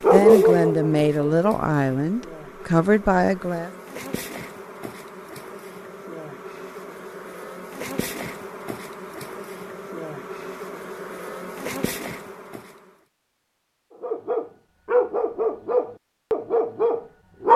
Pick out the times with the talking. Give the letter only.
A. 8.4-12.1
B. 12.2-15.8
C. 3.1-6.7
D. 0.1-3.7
D.